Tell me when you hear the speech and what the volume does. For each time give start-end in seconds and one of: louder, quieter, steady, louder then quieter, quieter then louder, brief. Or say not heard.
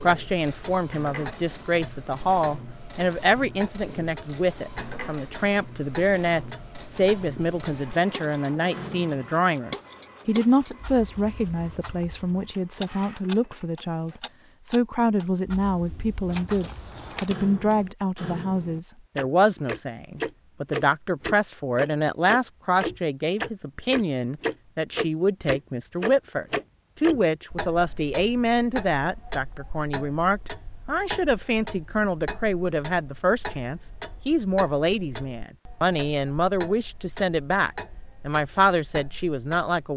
0.0-39.9 steady.